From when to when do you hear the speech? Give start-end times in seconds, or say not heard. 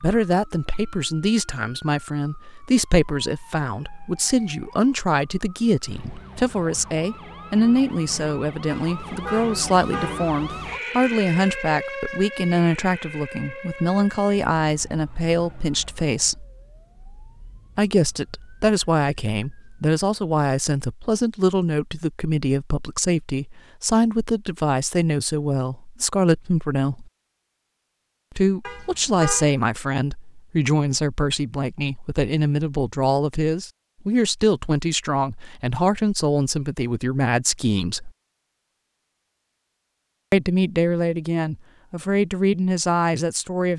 0.0-16.4, 17.8-27.1, 28.4-38.1, 40.3-43.7.